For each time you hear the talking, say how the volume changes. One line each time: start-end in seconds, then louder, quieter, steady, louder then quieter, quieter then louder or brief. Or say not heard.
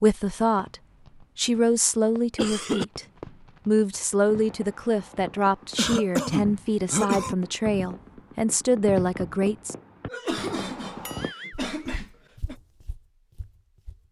0.0-0.8 brief
1.4-3.0 brief
3.6-9.8 steady.